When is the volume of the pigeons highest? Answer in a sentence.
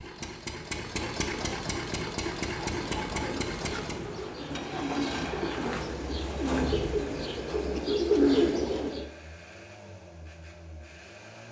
The loudest moment of the pigeons is at 8 seconds.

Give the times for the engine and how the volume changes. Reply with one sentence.
You can hear the engine from 0.0 to 11.4 s, getting quieter.